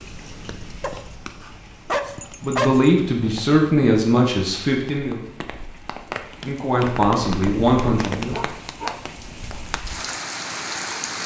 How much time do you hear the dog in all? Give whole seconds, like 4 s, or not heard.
4 s.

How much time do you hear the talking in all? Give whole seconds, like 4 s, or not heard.
5 s.